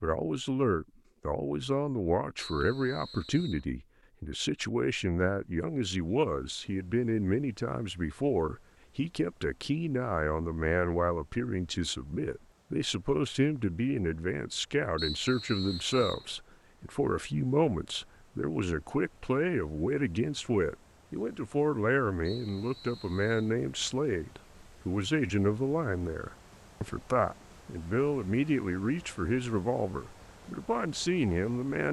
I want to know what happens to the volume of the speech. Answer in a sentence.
The volume of the speech stays about the same.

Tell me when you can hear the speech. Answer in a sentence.
The speech can be heard from 0.0 to 31.8 s.